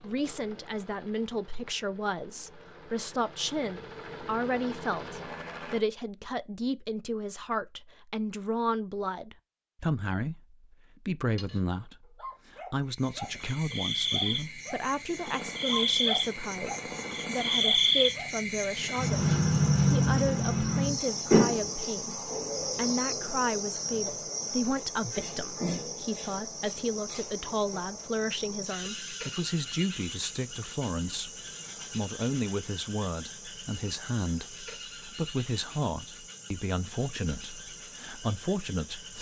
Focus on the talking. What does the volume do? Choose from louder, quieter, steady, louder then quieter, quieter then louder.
steady.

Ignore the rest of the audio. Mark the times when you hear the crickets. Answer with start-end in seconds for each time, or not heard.
12.9-39.1.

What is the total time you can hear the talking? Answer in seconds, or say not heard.
39 s.